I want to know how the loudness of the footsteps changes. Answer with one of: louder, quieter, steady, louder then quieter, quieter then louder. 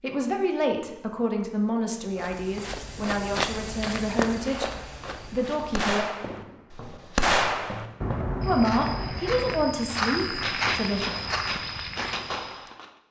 quieter then louder.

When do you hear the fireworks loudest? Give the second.
7 s.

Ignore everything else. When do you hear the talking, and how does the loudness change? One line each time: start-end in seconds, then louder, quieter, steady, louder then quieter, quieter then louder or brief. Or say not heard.
0.0-6.0 steady
8.4-11.1 brief.